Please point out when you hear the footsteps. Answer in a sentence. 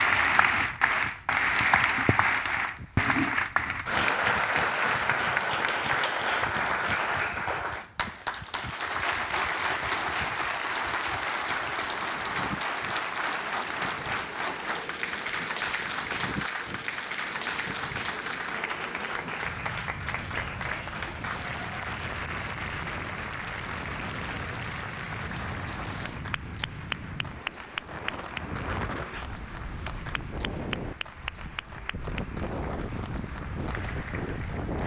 The footsteps can't be heard in this clip.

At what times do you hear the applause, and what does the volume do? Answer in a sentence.
The applause can be heard from 0.0 to 34.8 s, getting quieter.